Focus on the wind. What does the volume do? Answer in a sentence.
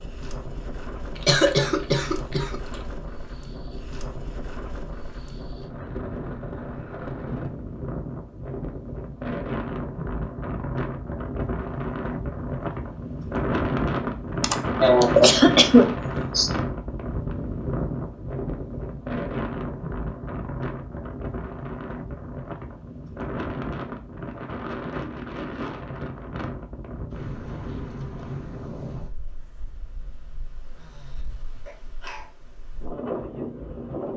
The loudness of the wind goes up, then down.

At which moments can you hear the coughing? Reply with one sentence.
You can hear the coughing from 1.2 to 2.5 s, from 14.4 to 16.5 s and from 31.6 to 32.2 s.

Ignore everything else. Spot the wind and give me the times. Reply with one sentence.
The wind can be heard from 0.0 to 34.1 s.